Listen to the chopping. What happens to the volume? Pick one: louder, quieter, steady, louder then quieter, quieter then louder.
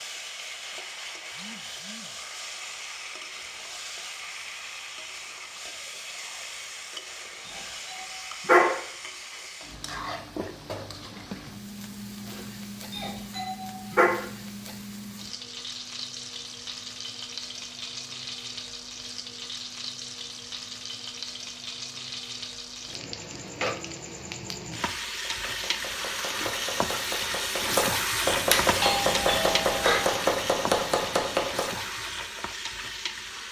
louder.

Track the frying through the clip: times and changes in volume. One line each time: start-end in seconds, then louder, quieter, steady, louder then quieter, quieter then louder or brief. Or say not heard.
0.0-33.4 louder.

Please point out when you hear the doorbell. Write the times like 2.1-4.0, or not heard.
7.5-8.7, 12.9-14.1, 28.5-30.1.